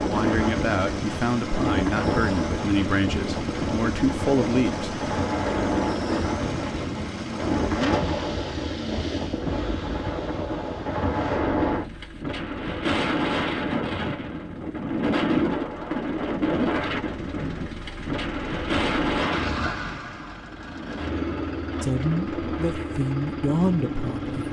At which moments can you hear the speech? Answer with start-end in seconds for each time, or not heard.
0.1-5.0, 21.8-24.4.